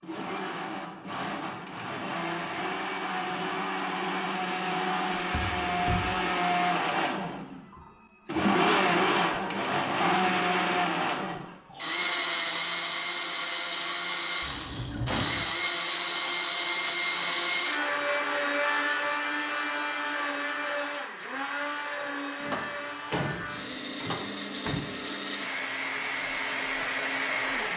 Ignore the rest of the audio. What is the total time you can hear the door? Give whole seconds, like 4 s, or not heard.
4 s.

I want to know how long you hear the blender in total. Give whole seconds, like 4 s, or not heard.
28 s.